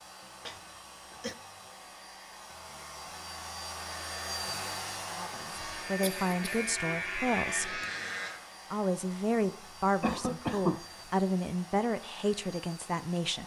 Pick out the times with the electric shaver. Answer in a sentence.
You can hear the electric shaver from 5.5 to 8.4 s.